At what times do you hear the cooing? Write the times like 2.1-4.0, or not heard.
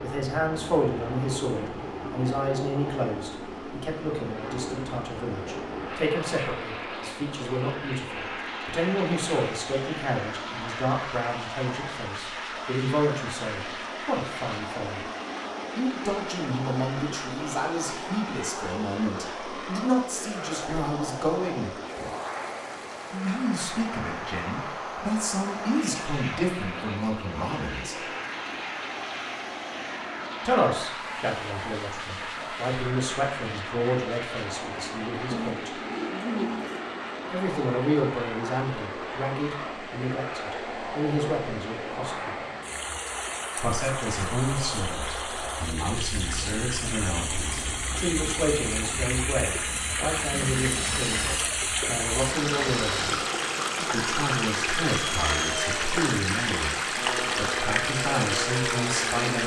35.3-36.9.